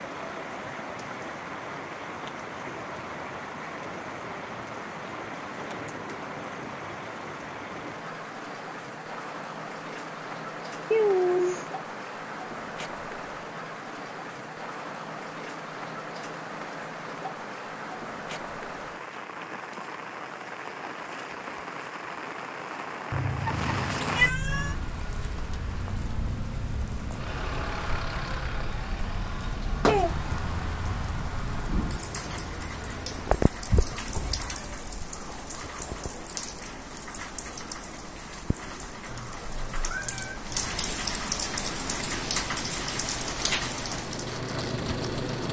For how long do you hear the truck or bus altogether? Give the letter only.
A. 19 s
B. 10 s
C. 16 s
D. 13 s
D.